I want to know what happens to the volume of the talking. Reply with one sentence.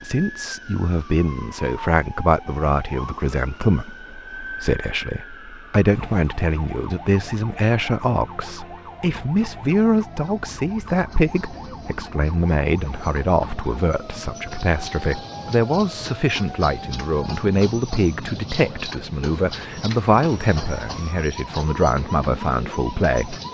The loudness of the talking stays about the same.